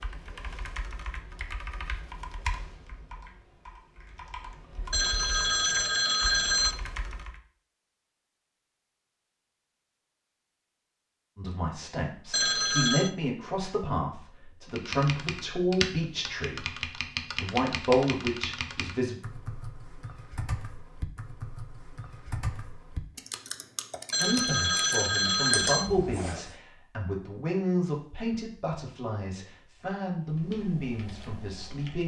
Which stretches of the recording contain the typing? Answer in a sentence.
The typing can be heard from 0.0 to 7.4 s, from 14.7 to 26.6 s and from 30.2 to 32.0 s.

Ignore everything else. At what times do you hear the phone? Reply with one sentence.
The phone can be heard from 4.9 to 6.8 s, from 12.3 to 13.1 s and from 24.1 to 25.9 s.